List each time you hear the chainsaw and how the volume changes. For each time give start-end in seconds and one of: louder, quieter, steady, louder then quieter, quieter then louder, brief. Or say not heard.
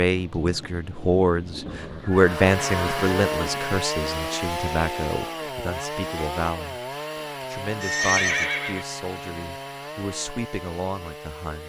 2.1-11.6 quieter.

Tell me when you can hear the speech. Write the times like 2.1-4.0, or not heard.
0.0-6.8, 7.5-11.6.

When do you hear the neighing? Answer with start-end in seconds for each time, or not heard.
1.6-3.6, 7.8-8.8.